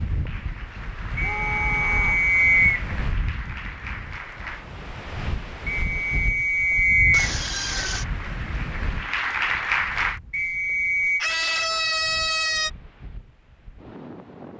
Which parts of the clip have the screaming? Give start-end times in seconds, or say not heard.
1.2-2.2, 7.1-8.1, 11.2-12.7.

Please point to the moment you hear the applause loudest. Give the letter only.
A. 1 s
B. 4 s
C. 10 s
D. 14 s
C.